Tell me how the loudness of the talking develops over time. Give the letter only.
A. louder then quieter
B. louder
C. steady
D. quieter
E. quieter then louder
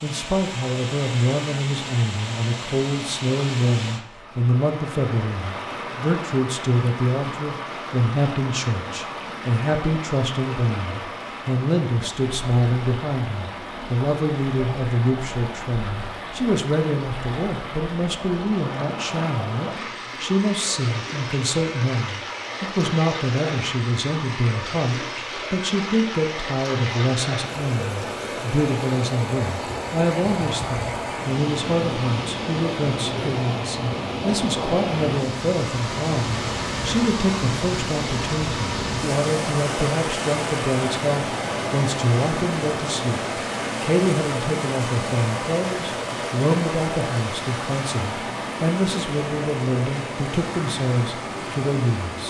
C.